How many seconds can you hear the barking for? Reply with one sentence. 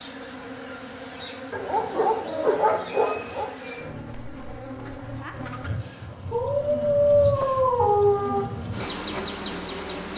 You can hear the barking for 4 seconds altogether.